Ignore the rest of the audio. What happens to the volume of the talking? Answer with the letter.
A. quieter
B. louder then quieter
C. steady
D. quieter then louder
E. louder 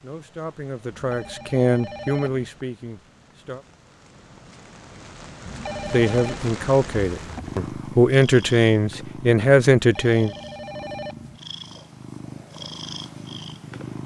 E.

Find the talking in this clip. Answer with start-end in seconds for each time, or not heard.
0.0-3.6, 5.9-10.3.